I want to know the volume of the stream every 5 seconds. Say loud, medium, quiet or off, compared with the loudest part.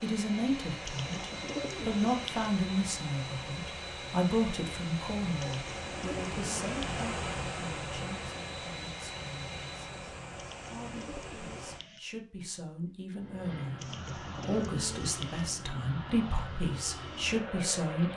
medium, loud, medium, off.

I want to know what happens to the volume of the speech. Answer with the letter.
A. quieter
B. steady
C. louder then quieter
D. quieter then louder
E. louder
D.